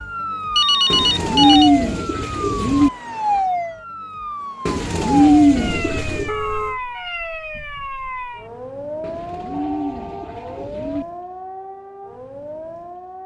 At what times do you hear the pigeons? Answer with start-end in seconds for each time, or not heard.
0.9-2.9, 4.7-6.3, 9.0-11.1.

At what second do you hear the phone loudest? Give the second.
1 s.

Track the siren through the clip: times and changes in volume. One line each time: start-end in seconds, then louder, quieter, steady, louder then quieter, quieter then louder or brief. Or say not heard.
0.0-13.2 quieter.